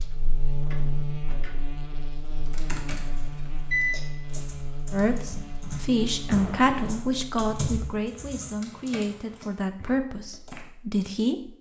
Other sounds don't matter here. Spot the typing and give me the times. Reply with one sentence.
The typing can be heard from 2.5 to 10.6 s.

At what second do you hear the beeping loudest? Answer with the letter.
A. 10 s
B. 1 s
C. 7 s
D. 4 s
D.